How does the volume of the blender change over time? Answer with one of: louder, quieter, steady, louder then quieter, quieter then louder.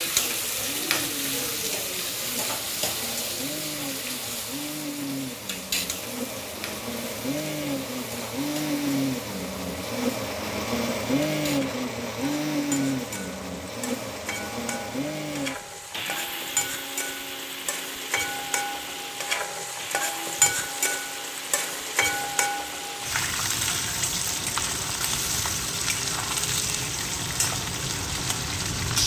louder then quieter.